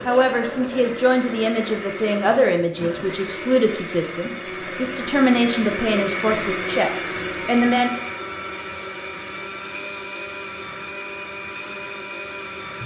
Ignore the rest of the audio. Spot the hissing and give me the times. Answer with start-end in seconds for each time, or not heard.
8.6-12.8.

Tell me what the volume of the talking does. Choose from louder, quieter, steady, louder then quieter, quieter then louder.
steady.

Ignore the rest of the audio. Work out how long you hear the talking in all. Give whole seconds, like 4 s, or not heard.
8 s.